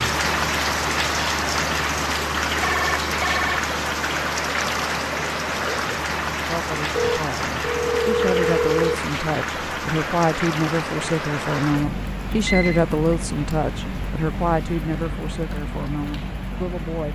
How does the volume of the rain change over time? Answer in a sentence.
The volume of the rain goes down.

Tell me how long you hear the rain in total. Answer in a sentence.
You can hear the rain for 17 seconds altogether.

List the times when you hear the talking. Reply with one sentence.
You can hear the talking from 6.5 to 17.0 s.